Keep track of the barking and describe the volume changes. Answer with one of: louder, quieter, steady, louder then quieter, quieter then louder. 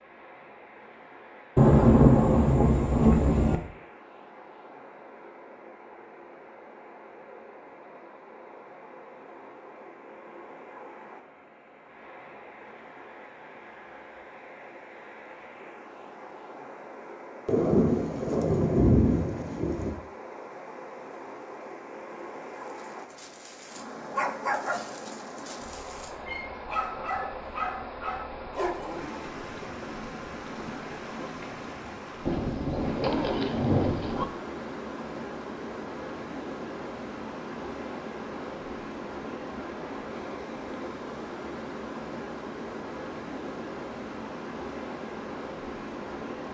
quieter then louder.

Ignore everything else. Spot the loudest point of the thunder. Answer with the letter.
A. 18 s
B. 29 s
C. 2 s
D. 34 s
C.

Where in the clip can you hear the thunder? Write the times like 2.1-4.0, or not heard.
1.6-3.6, 17.4-19.9, 32.2-34.2.